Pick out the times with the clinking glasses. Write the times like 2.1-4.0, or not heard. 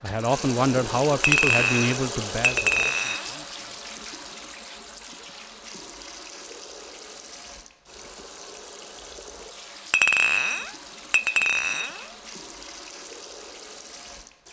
1.2-3.4, 9.9-12.1.